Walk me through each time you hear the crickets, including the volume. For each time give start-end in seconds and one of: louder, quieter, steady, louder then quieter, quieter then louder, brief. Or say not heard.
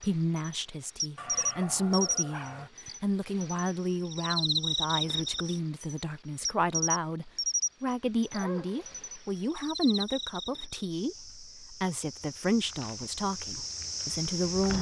0.0-14.7 quieter.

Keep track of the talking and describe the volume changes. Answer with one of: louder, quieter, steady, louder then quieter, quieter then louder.
steady.